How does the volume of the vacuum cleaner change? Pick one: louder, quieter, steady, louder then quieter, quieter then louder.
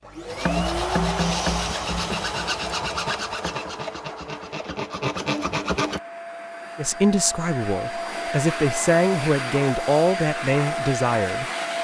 quieter then louder.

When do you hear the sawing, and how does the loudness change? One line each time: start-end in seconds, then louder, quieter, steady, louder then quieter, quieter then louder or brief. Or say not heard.
0.2-6.0 quieter then louder.